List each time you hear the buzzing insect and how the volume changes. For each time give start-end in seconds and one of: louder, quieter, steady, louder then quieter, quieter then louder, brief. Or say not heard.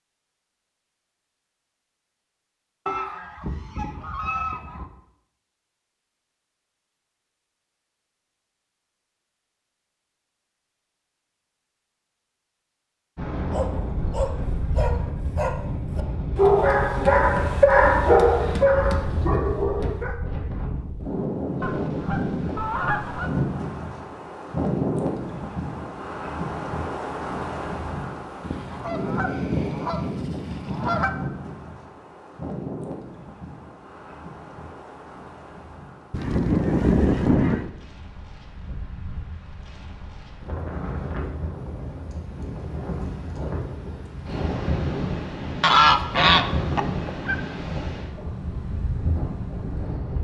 not heard.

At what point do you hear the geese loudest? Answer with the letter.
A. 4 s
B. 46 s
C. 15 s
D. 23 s
B.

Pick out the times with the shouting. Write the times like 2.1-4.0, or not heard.
not heard.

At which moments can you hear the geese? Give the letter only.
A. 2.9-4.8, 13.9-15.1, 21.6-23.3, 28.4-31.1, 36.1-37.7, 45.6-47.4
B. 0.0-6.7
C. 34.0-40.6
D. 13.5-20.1
A.